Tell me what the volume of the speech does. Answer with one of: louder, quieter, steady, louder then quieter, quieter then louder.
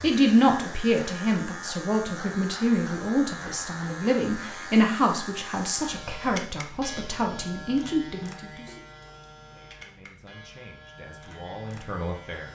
quieter.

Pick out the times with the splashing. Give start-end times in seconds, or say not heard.
8.7-9.2.